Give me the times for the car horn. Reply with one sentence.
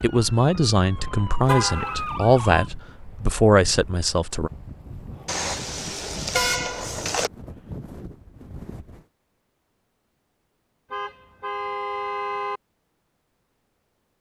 The car horn can be heard from 1.4 to 2.0 s, from 5.2 to 7.3 s and from 10.9 to 12.6 s.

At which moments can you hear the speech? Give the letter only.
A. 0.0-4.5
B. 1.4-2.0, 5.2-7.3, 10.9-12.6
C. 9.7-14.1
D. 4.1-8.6
A.